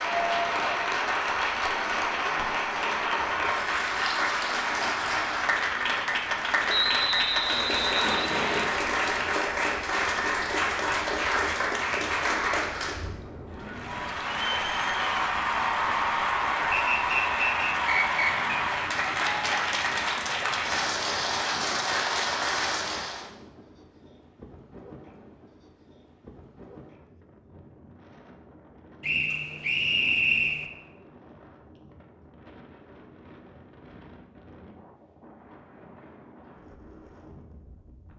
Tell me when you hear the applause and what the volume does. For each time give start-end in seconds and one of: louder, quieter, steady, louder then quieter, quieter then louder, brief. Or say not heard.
0.0-23.3 steady.